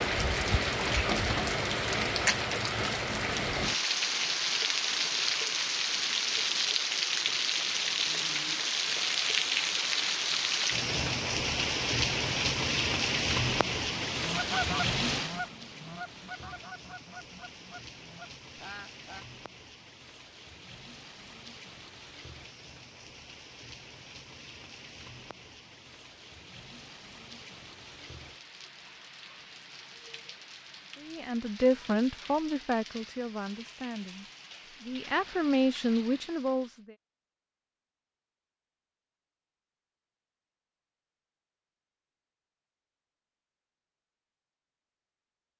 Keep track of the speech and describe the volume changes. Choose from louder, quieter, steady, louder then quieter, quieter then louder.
quieter then louder.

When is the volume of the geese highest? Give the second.
15 s.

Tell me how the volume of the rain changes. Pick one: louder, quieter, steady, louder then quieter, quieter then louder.
quieter.